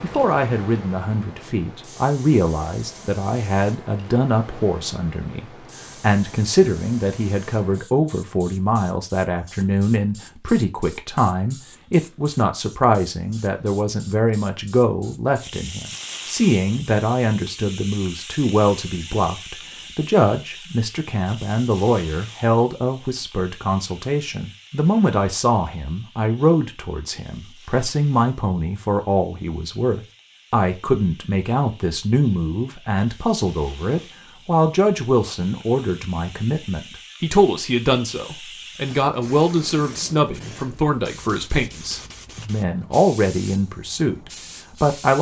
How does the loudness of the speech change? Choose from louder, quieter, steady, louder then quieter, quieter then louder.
steady.